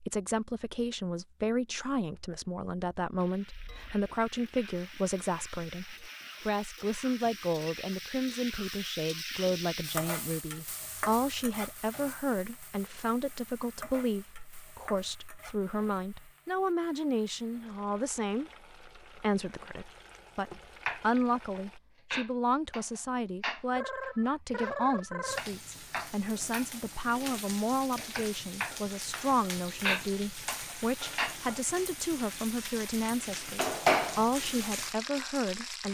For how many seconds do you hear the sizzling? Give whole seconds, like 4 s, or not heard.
29 s.